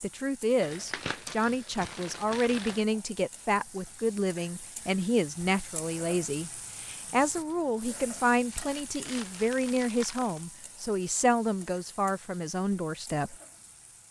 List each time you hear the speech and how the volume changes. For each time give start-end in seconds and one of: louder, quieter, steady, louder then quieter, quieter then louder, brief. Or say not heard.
0.0-13.3 steady.